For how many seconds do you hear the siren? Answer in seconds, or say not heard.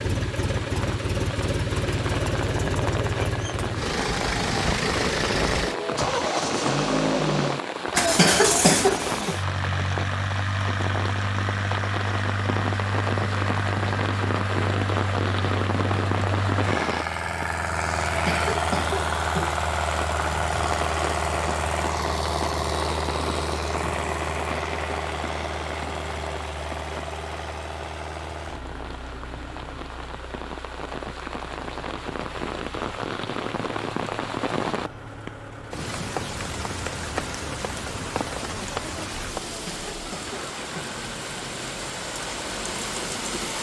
not heard.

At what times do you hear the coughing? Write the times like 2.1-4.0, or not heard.
8.0-9.3, 18.1-19.6, 39.5-41.0.